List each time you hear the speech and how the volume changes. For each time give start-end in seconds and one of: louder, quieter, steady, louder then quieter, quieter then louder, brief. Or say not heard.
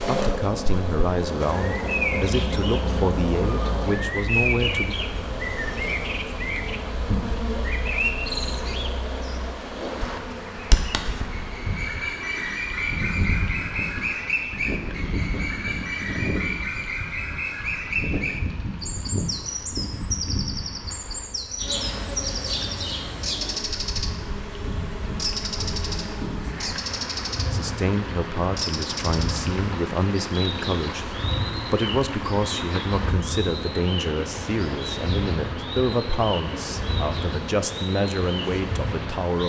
0.0-5.0 steady
27.5-39.4 steady.